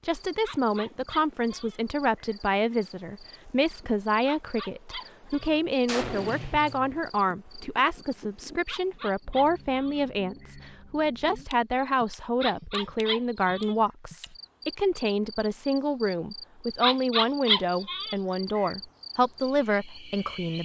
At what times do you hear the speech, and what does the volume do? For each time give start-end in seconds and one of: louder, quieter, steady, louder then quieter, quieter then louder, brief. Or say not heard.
0.1-20.6 steady.